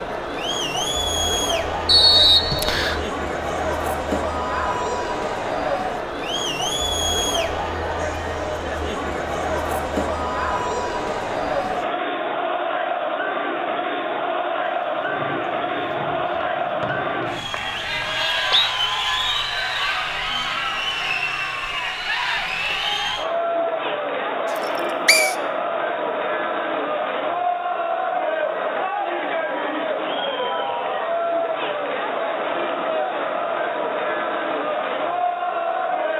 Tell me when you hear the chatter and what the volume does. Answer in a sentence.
The chatter can be heard from 0.0 to 36.1 s, at a steady volume.